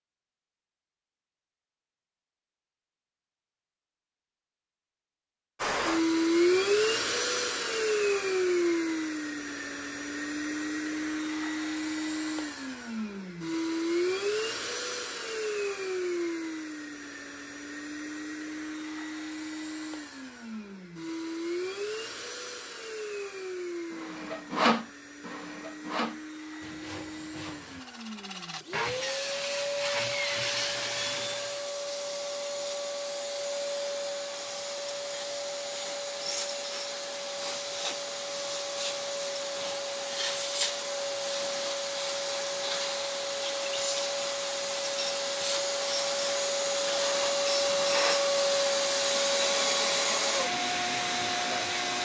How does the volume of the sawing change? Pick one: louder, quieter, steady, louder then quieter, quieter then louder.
quieter then louder.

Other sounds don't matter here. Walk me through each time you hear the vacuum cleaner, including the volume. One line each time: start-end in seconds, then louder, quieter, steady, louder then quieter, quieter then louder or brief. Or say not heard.
5.6-51.9 quieter then louder.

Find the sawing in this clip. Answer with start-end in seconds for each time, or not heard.
23.9-31.7.